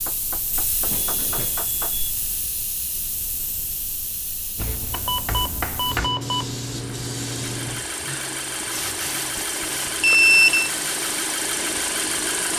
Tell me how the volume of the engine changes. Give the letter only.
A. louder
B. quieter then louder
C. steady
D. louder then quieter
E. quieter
A.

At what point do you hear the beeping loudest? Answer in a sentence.
The volume of the beeping peaks at 10 seconds.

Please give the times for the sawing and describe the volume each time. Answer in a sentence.
The sawing can't be heard in this clip.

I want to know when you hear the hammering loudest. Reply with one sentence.
The loudest moment of the hammering is at 6 seconds.